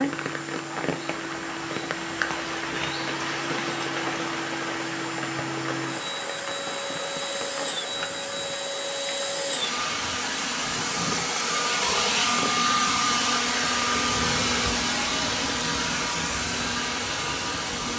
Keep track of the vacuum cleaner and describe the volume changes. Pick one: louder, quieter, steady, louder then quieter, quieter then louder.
louder.